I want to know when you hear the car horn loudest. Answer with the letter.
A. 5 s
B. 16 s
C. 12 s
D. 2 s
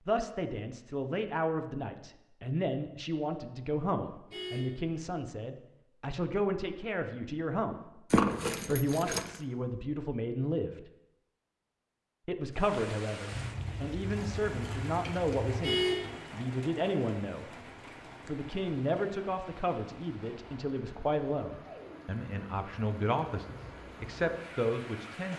B.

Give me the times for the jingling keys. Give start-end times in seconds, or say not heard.
8.1-9.4, 13.3-15.6.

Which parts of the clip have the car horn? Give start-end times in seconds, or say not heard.
4.2-4.8, 15.6-16.1.